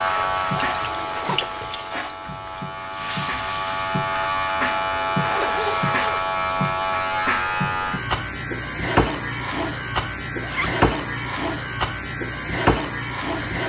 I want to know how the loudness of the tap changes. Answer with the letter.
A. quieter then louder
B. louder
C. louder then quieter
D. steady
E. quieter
A.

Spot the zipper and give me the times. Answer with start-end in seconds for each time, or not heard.
0.1-1.6, 5.1-6.3, 10.4-10.9.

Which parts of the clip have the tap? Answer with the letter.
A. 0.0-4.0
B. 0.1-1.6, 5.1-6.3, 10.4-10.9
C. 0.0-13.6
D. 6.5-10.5
A.